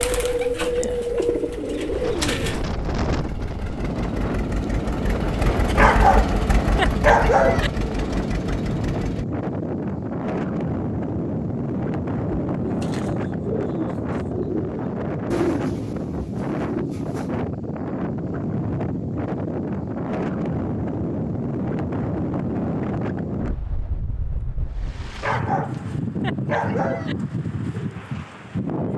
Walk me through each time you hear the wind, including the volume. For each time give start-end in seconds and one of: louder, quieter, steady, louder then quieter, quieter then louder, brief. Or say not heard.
0.0-28.9 steady.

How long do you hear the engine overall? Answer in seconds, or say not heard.
9 s.